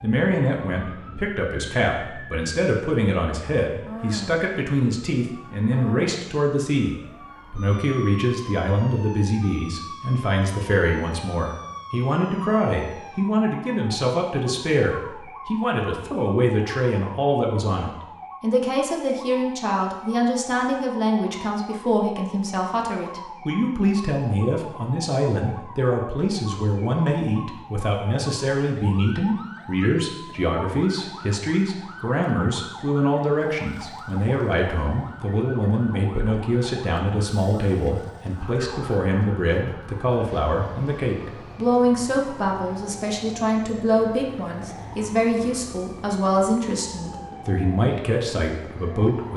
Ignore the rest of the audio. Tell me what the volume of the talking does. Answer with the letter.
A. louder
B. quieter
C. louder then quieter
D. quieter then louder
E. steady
E.